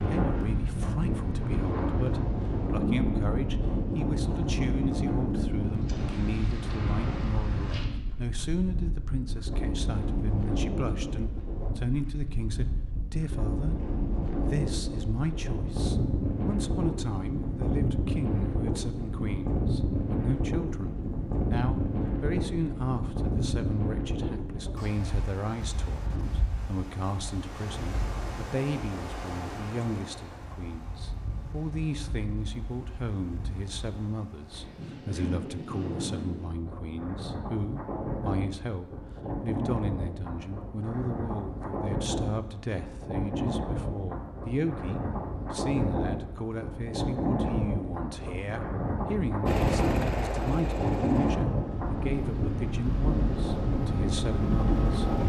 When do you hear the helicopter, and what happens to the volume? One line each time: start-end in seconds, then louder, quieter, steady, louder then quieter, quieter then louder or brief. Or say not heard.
49.5-55.2 quieter then louder.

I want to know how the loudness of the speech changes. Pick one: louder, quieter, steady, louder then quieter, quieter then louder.
steady.